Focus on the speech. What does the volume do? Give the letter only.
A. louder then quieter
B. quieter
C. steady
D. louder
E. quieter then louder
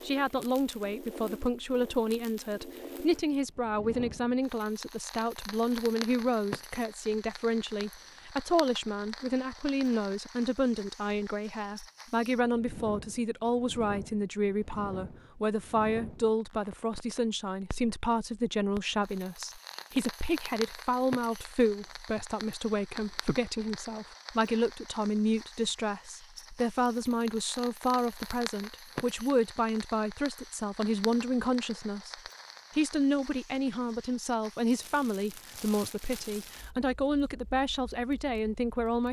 C.